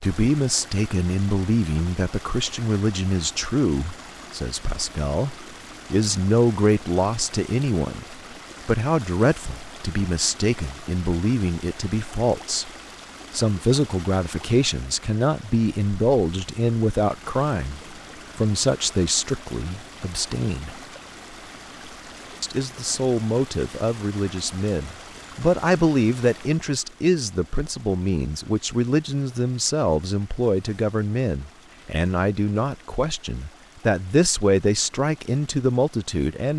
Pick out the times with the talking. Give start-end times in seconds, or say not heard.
0.0-12.7, 13.3-20.8, 22.4-36.5.